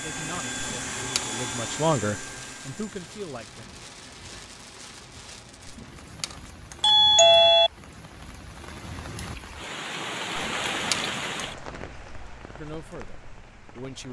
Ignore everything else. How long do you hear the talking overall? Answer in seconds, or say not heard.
5 s.